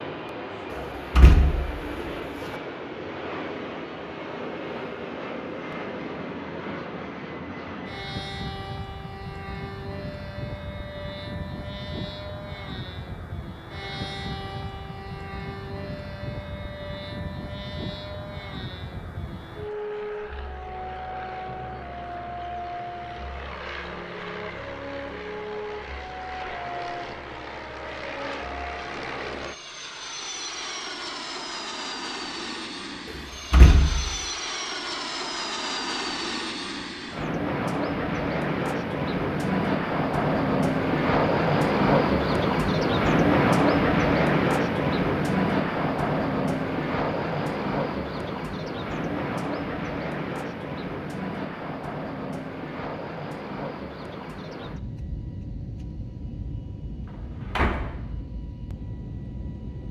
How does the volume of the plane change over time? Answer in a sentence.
The loudness of the plane goes up, then down.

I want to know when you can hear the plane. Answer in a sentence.
You can hear the plane from 0.0 to 59.8 s.